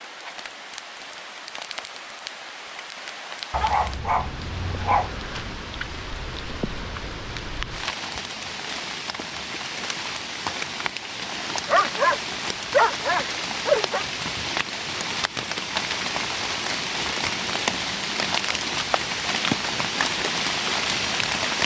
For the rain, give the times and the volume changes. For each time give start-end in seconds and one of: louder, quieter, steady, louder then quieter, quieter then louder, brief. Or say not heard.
0.0-21.6 louder.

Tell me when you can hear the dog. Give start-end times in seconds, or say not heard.
3.5-5.2, 11.7-14.1.